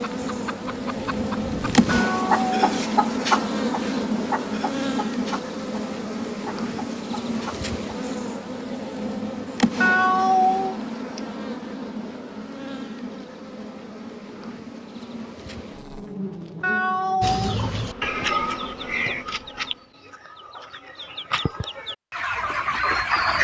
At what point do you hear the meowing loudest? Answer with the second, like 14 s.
10 s.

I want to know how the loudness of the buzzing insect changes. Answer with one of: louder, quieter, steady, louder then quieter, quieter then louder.
quieter.